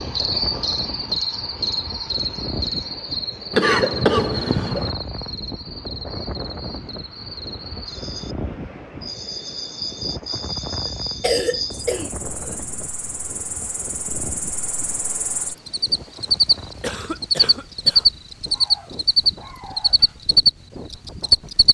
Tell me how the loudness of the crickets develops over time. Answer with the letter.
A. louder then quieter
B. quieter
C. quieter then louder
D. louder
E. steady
C.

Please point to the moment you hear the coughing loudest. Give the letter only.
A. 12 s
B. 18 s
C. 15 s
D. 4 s
D.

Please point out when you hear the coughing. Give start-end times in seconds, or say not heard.
3.5-5.0, 10.8-12.6, 16.8-18.1.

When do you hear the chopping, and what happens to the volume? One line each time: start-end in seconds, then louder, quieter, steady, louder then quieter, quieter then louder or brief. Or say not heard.
not heard.